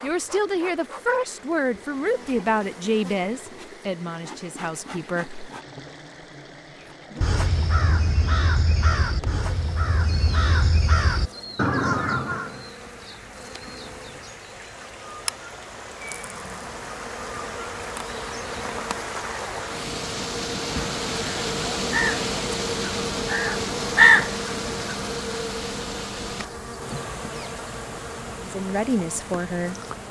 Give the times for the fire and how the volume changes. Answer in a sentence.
The fire can't be heard in this clip.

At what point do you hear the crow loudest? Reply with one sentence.
The volume of the crow peaks at 24 seconds.